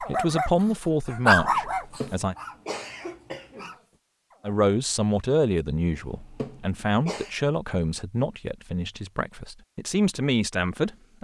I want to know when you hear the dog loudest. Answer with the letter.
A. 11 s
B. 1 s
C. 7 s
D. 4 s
B.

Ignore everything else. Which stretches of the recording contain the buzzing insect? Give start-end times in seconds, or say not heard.
not heard.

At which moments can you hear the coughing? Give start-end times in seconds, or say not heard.
1.5-3.7, 5.9-7.3.